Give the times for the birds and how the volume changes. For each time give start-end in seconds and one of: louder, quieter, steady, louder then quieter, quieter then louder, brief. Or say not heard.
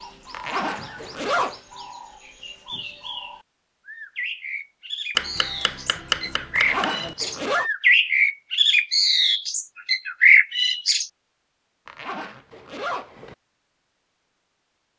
0.0-11.1 louder.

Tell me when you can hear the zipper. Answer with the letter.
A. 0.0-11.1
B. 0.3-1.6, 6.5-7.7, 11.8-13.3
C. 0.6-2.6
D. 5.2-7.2
B.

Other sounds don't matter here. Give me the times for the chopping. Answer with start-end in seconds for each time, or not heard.
5.2-7.2.